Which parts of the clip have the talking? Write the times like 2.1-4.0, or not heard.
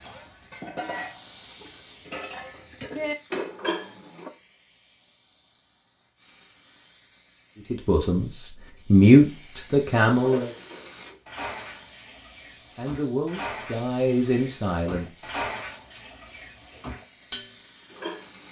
7.7-10.5, 12.8-15.4.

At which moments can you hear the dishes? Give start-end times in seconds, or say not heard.
0.0-4.3, 10.2-18.3.